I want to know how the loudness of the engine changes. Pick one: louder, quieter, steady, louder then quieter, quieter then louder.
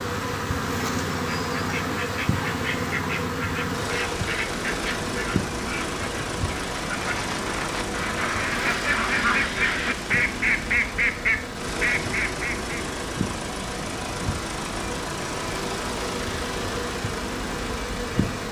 steady.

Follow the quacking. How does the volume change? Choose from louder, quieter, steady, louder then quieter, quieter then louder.
louder.